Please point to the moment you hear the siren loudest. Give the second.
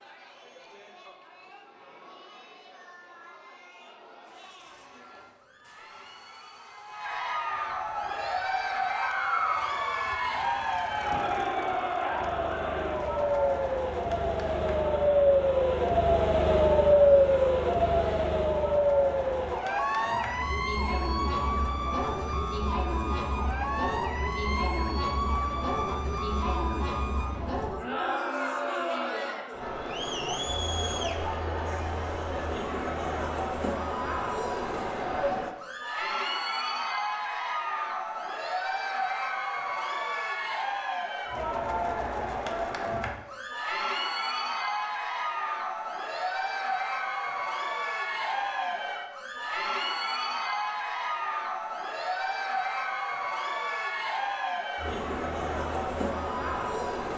17 s.